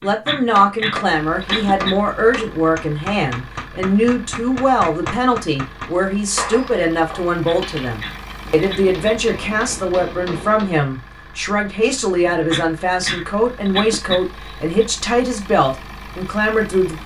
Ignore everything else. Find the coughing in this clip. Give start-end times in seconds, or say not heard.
0.0-1.9, 7.2-9.2, 12.2-14.8.